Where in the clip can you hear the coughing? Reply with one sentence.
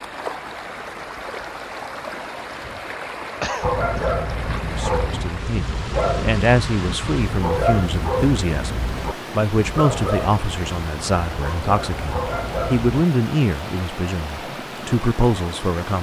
The coughing can be heard from 3.4 to 4.6 s.